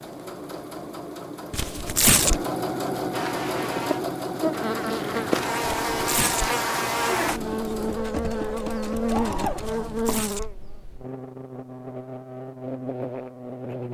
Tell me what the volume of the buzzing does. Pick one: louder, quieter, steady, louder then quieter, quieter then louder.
quieter.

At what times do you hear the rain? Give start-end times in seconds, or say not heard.
not heard.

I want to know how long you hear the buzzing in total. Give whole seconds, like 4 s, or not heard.
11 s.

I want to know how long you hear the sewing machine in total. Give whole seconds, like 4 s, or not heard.
10 s.